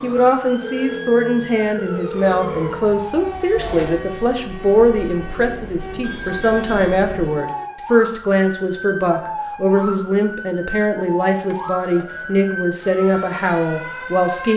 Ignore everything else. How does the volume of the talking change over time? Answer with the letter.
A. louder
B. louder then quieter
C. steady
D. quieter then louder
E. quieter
C.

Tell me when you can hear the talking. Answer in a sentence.
The talking can be heard from 0.0 to 14.5 s.